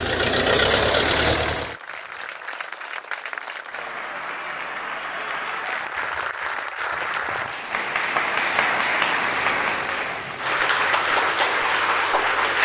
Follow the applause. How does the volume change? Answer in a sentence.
The volume of the applause goes up.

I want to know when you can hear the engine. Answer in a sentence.
The engine can be heard from 0.0 to 1.8 s and from 9.3 to 12.6 s.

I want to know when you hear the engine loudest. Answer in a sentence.
The loudest moment of the engine is at 1 second.